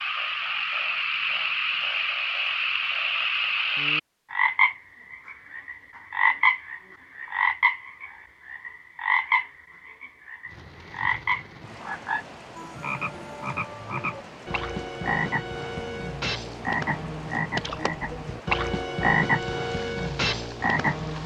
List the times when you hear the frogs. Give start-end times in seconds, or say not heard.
0.0-21.2.